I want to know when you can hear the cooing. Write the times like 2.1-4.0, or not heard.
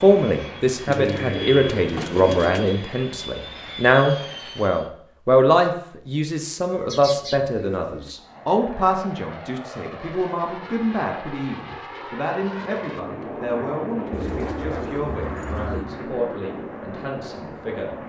0.8-2.8, 6.7-8.2, 14.1-15.9.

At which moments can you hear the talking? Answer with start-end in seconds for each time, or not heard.
0.0-18.0.